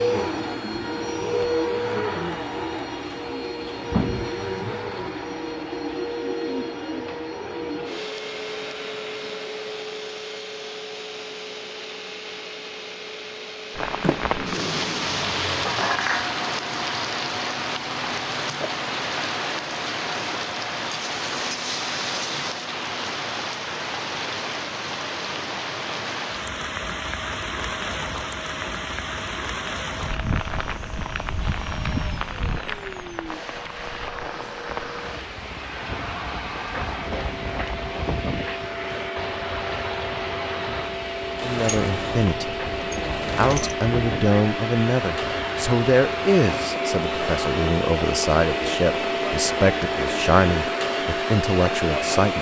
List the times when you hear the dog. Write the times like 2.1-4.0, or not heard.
not heard.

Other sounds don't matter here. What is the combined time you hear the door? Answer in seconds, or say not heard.
4 s.